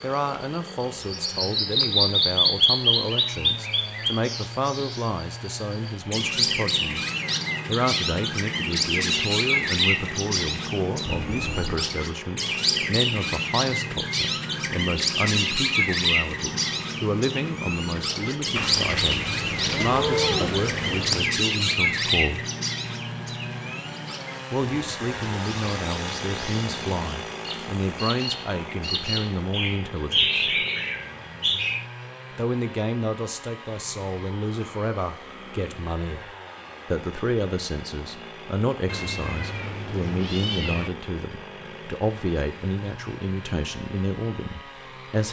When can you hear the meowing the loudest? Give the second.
20 s.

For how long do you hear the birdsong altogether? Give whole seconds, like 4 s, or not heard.
32 s.